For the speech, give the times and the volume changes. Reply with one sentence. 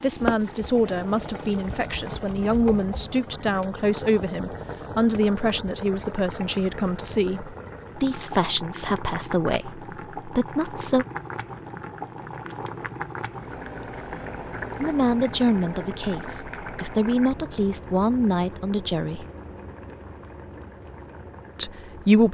You can hear the speech from 0.0 to 11.1 s, at a steady volume; from 14.8 to 19.2 s, getting quieter then louder; and briefly from 21.6 to 22.2 s.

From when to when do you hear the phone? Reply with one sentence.
The phone can't be heard in this clip.